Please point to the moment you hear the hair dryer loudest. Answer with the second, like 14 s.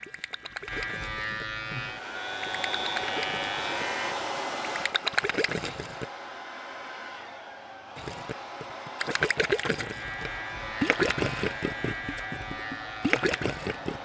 4 s.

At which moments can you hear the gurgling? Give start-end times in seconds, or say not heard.
0.0-6.0, 8.0-14.0.